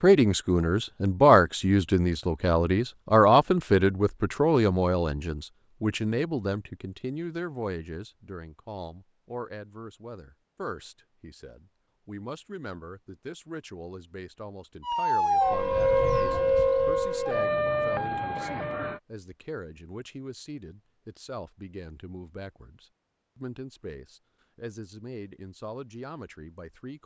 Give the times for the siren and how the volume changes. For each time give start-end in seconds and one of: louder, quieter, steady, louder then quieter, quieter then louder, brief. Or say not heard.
14.8-19.0 quieter.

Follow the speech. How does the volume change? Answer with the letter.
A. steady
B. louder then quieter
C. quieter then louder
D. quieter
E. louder
D.